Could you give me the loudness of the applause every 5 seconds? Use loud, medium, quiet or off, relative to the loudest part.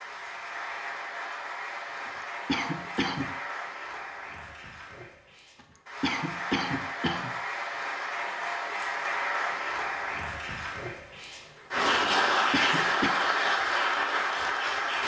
medium, medium, loud.